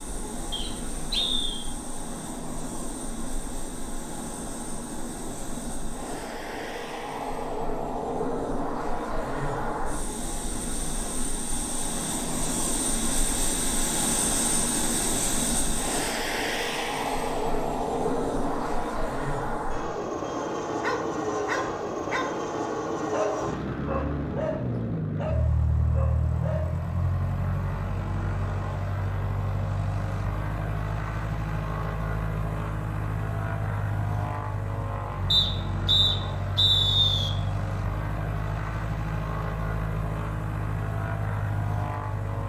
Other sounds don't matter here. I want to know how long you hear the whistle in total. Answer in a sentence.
You can hear the whistle for 3 seconds altogether.